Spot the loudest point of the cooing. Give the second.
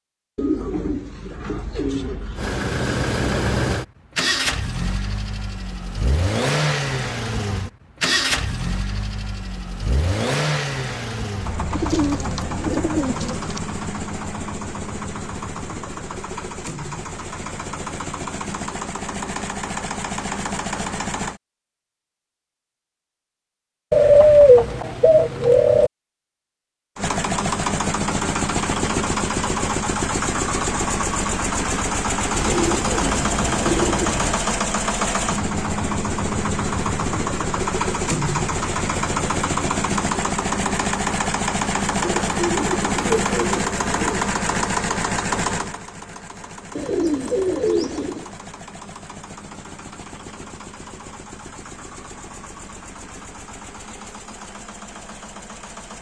24 s.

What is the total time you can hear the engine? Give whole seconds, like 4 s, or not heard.
48 s.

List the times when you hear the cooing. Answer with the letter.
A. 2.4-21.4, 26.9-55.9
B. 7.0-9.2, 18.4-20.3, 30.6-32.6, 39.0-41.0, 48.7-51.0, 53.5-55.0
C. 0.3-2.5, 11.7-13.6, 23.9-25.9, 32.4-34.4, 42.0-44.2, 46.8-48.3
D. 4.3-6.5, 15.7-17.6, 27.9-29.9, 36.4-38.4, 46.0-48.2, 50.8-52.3
C.